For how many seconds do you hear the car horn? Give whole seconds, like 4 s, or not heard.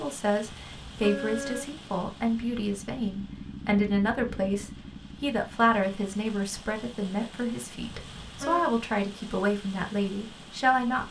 2 s.